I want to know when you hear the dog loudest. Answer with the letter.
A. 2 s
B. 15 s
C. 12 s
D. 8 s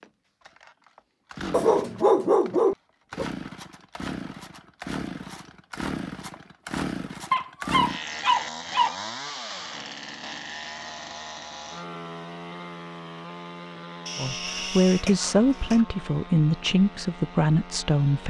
A.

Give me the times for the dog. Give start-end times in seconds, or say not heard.
1.5-3.2, 7.3-8.9, 14.1-15.8.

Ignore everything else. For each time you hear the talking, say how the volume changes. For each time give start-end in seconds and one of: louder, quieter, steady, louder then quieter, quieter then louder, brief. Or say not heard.
14.2-18.2 steady.